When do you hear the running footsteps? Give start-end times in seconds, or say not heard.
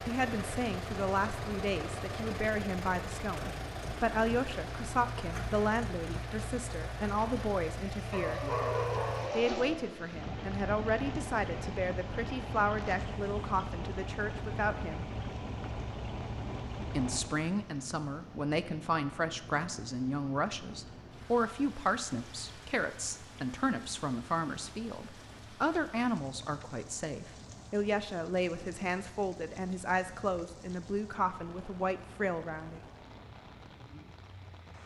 not heard.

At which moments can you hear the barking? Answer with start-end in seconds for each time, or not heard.
8.1-9.6.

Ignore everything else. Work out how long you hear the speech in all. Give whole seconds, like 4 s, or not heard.
30 s.